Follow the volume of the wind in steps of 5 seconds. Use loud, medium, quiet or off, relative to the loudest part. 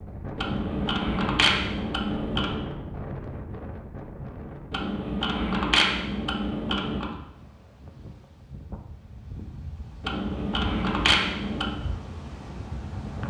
loud, medium, loud.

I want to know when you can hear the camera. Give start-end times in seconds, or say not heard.
0.3-2.6, 4.7-7.2, 10.0-11.8.